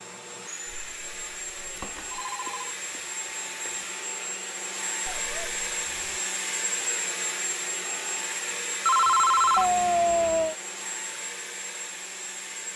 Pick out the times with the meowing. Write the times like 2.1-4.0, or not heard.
0.7-2.2, 5.0-6.2, 9.6-10.6.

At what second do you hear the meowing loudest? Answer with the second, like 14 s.
10 s.